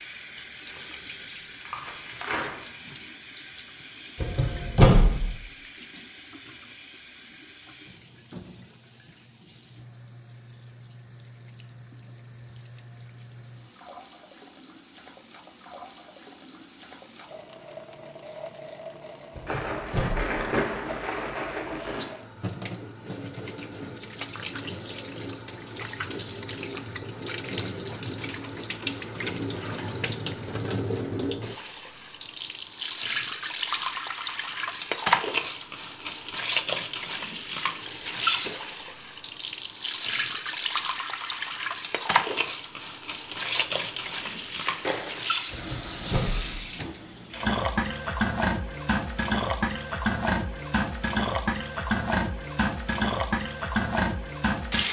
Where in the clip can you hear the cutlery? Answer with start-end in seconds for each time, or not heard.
not heard.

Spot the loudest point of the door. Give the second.
5 s.